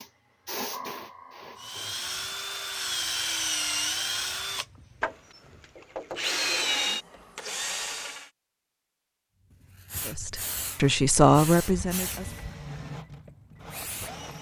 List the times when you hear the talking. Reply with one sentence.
You can hear the talking from 10.1 to 12.3 s.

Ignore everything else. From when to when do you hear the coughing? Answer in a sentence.
You can't hear the coughing here.